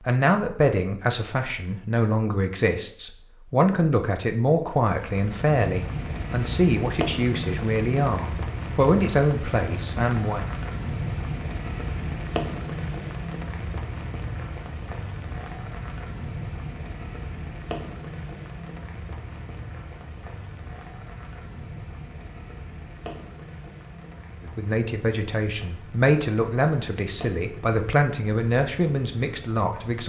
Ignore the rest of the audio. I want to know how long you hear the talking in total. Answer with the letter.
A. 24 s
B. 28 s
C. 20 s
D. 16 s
D.